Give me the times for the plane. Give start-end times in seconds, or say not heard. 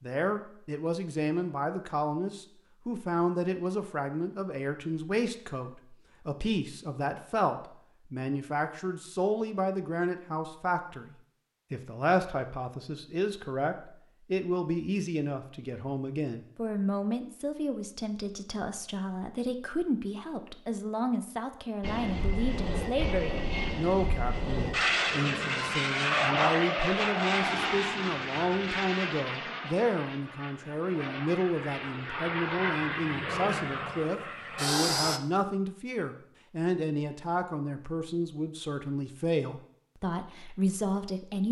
21.8-35.2.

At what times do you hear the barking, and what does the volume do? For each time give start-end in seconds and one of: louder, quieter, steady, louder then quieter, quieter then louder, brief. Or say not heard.
not heard.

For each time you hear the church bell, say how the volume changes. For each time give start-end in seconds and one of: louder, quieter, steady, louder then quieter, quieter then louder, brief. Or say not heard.
not heard.